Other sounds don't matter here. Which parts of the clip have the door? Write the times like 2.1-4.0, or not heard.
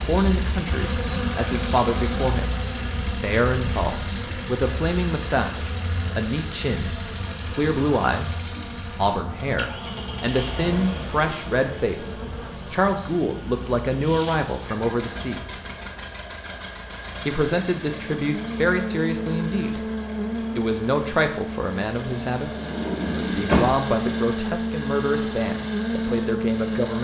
22.6-23.8.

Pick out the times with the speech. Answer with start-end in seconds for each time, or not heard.
0.0-15.4, 17.2-19.8, 20.4-26.9.